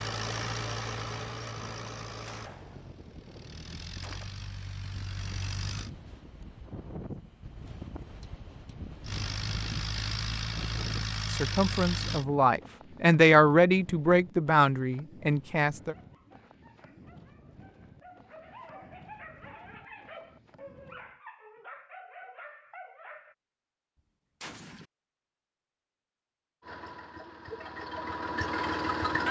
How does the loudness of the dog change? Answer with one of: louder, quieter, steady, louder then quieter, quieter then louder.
louder.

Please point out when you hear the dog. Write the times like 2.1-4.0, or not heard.
15.8-23.4.